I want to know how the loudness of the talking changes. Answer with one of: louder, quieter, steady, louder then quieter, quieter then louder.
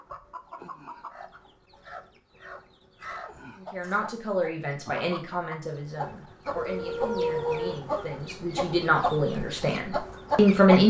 quieter then louder.